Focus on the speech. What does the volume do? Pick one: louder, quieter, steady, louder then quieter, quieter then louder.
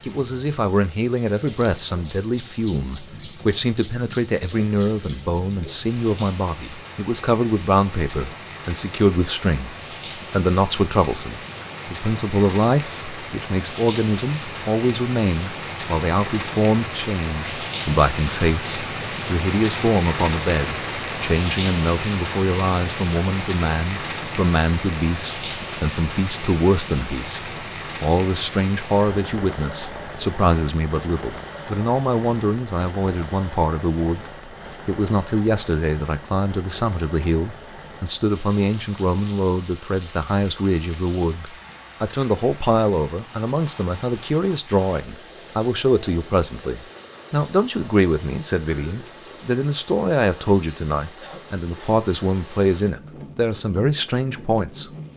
steady.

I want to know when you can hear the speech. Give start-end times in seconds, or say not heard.
0.0-55.1.